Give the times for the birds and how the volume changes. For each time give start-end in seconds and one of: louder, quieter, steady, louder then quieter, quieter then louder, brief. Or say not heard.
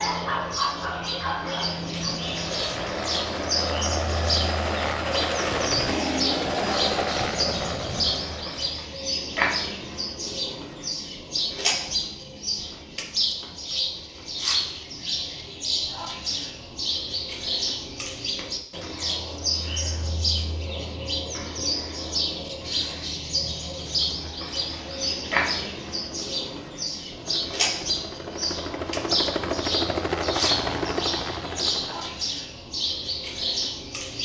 0.0-34.2 steady.